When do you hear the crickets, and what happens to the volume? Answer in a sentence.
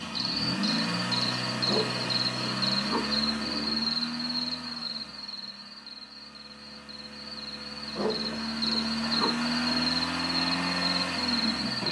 You can hear the crickets from 0.0 to 11.8 s, getting quieter then louder.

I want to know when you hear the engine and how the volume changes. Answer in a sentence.
You can hear the engine from 0.0 to 11.8 s, getting quieter then louder.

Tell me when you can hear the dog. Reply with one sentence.
The dog can be heard from 1.6 to 3.9 s and from 8.0 to 9.9 s.